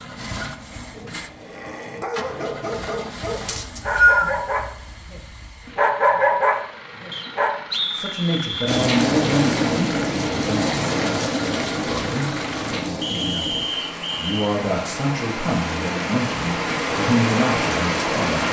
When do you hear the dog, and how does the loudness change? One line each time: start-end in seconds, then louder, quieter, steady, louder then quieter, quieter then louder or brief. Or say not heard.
0.9-7.5 louder.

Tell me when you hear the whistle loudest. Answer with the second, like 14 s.
4 s.